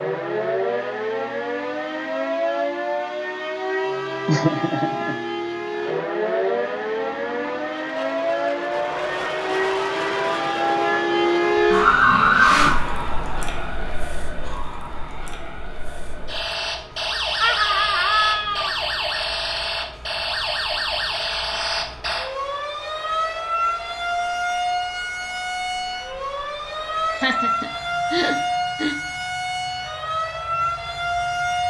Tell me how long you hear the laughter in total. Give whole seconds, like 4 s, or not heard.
4 s.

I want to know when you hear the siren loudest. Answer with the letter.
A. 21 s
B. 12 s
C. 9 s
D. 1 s
B.